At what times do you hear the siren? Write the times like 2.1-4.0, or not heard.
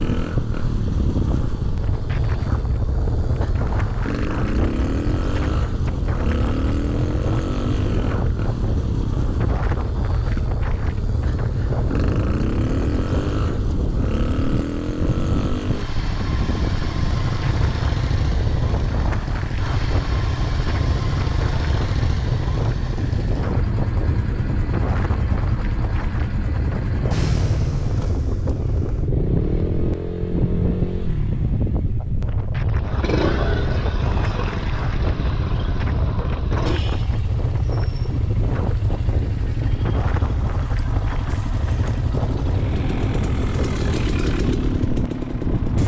not heard.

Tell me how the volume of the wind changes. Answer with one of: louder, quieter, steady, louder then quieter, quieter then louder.
steady.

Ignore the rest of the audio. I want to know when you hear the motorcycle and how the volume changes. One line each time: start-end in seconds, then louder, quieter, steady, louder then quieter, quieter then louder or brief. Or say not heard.
0.0-45.8 steady.